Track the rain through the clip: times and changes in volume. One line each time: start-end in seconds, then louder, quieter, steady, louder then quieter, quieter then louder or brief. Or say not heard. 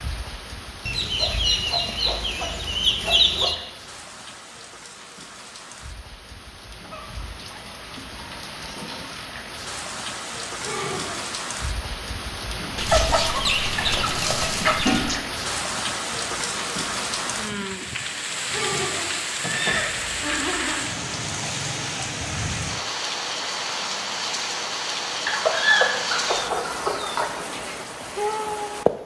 0.0-29.0 louder.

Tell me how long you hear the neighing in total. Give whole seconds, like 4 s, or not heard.
2 s.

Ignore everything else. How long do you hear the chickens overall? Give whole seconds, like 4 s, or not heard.
11 s.